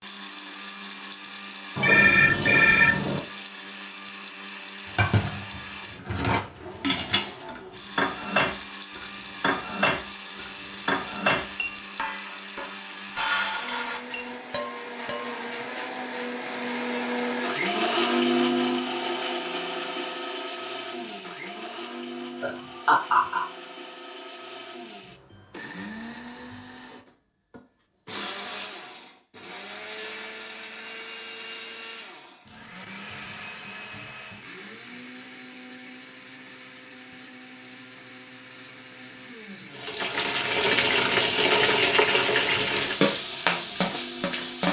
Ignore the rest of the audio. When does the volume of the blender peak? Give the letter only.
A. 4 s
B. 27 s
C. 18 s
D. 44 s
C.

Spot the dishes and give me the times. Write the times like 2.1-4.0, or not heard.
4.8-15.4.